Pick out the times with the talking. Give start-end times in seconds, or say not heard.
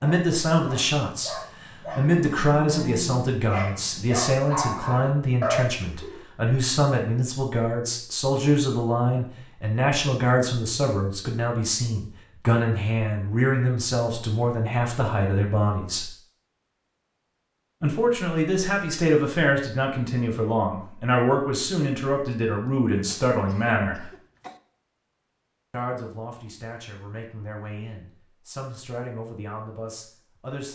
0.0-16.1, 17.8-24.1, 25.7-30.6.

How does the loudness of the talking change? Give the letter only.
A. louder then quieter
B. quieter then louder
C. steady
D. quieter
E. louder
D.